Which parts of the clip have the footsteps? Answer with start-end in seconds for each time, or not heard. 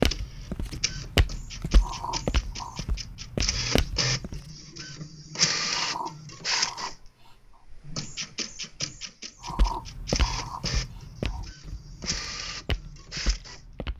0.0-4.4, 9.4-13.9.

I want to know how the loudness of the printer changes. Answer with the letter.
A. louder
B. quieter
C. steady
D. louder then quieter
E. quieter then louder
D.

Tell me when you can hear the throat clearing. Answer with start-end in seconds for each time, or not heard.
1.8-2.9, 5.7-7.6, 9.4-11.4.